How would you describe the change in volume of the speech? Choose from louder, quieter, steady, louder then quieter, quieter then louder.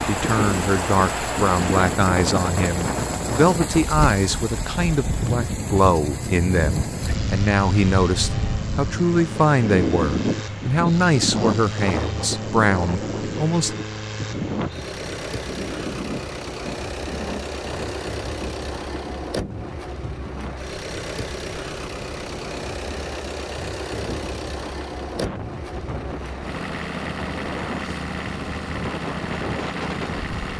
steady.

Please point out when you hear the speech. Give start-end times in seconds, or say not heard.
0.0-13.8.